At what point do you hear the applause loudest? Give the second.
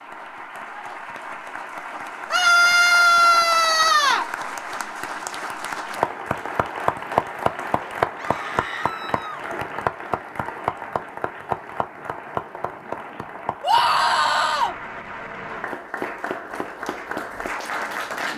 8 s.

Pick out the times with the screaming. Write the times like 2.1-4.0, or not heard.
2.3-4.2, 8.2-9.4, 13.6-14.8.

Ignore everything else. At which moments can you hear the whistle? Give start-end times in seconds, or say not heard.
not heard.